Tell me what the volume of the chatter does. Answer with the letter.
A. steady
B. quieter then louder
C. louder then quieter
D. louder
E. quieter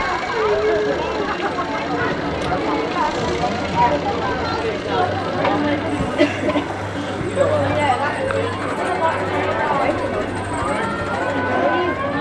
A.